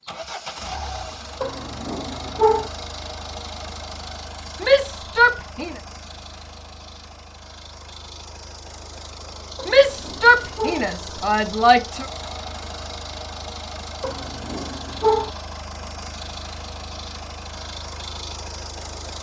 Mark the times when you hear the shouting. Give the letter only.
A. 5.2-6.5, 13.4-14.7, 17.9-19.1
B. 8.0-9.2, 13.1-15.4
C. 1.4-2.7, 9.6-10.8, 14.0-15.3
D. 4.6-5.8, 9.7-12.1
D.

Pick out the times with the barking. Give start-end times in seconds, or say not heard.
1.4-2.7, 9.6-10.8, 14.0-15.3.